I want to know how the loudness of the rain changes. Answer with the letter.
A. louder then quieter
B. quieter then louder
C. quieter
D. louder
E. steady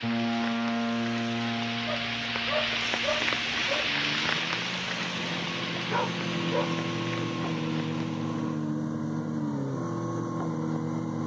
A.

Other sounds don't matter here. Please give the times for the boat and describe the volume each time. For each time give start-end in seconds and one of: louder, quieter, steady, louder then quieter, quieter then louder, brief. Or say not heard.
0.0-11.2 quieter then louder.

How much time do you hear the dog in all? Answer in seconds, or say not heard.
3 s.